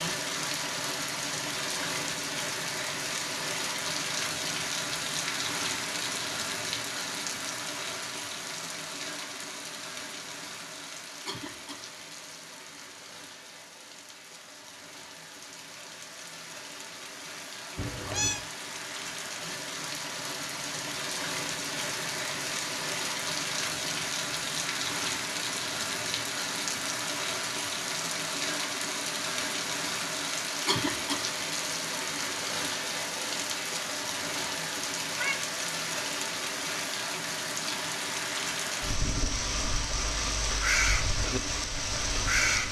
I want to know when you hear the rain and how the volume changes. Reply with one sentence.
The rain can be heard from 0.0 to 42.6 s, getting quieter then louder.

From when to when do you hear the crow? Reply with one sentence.
You can hear the crow from 40.5 to 42.6 s.